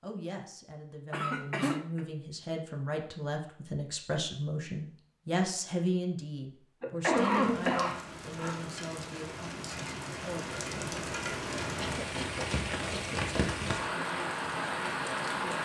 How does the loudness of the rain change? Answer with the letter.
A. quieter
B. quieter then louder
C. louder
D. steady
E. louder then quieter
C.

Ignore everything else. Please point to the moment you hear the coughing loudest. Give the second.
7 s.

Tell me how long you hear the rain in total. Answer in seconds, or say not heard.
8 s.